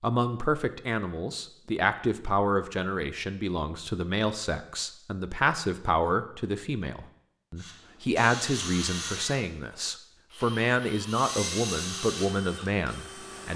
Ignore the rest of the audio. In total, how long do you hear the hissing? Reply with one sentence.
You can hear the hissing for 4 seconds altogether.